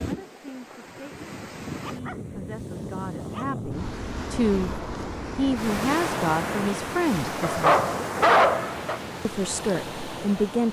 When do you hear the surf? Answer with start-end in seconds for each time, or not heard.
0.0-10.6.